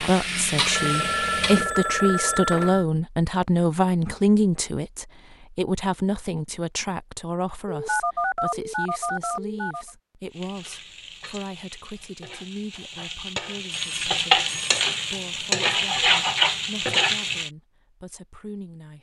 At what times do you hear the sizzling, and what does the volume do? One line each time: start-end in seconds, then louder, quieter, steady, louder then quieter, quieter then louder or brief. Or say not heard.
0.0-1.7 brief
10.3-17.5 louder.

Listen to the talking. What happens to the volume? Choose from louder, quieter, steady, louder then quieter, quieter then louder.
quieter.